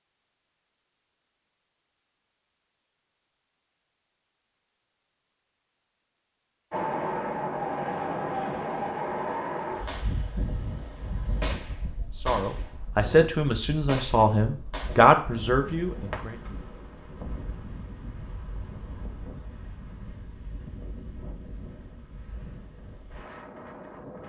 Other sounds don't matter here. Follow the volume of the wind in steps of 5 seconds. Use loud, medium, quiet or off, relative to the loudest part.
off, loud, medium, quiet, quiet.